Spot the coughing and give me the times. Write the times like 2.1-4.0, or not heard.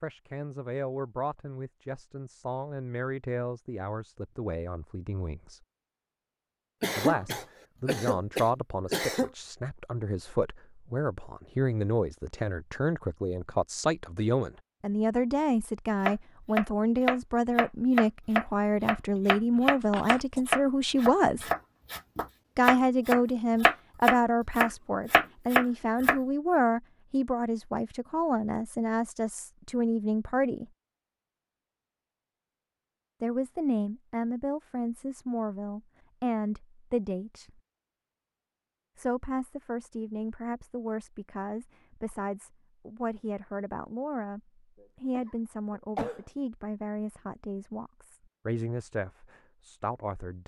6.8-9.3, 19.9-20.4, 44.8-46.2.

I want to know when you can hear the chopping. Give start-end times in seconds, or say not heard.
16.0-26.2.